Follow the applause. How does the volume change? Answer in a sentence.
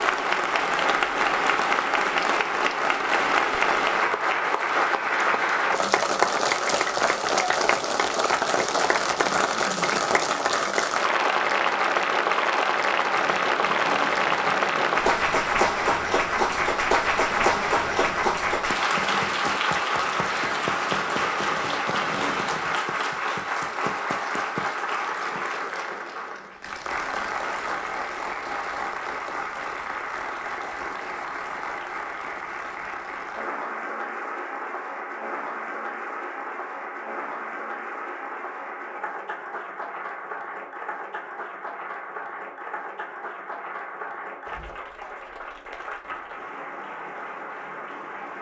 The loudness of the applause goes down.